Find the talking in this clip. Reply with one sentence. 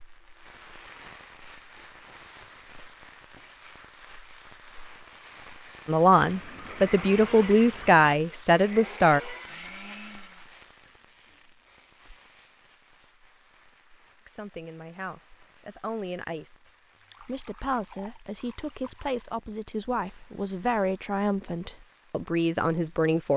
You can hear the talking from 5.8 to 9.2 s, from 14.2 to 16.6 s and from 17.2 to 23.3 s.